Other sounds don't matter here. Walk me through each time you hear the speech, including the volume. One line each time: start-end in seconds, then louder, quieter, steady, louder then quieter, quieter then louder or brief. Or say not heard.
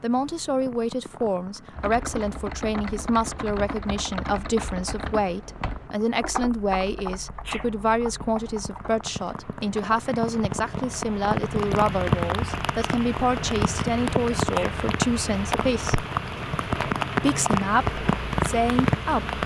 0.0-16.0 steady
17.2-19.4 brief.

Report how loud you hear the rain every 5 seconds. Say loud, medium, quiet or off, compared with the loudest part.
quiet, quiet, loud, loud.